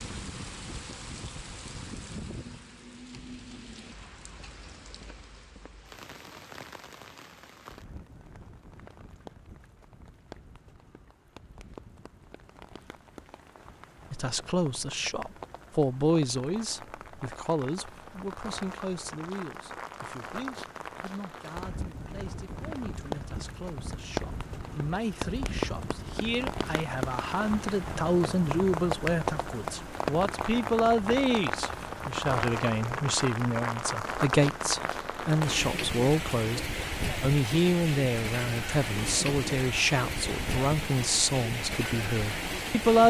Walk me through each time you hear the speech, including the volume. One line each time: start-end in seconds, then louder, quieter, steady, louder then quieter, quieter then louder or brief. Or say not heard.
14.1-43.0 quieter then louder.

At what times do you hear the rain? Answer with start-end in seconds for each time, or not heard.
0.0-43.0.